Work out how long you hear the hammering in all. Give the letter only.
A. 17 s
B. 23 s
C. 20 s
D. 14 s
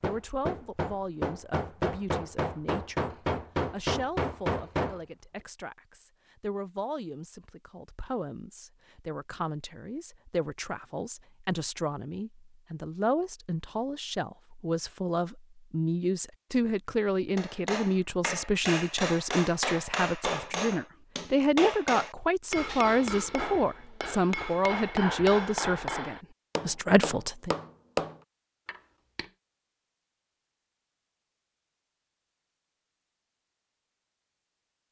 A.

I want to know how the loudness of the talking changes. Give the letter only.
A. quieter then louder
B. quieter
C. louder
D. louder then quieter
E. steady
C.